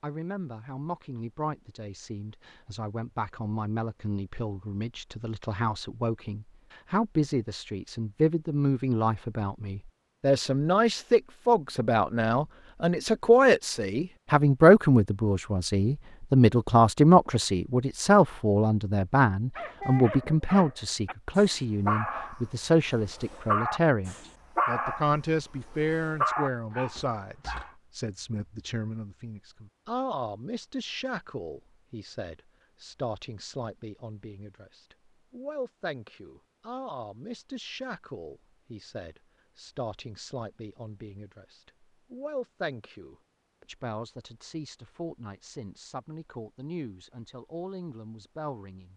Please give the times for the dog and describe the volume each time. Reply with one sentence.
The dog can be heard from 19.6 to 27.8 s, getting louder.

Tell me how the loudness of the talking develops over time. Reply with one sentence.
The volume of the talking goes up, then down.